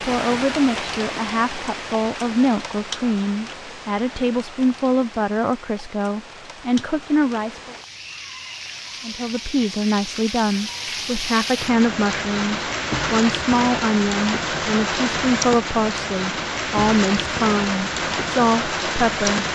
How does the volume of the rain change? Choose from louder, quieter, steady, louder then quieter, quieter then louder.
quieter then louder.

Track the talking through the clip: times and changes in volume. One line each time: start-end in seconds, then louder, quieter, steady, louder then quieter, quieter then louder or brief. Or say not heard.
0.0-7.8 steady
9.0-19.4 steady.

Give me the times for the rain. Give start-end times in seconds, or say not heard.
0.0-19.4.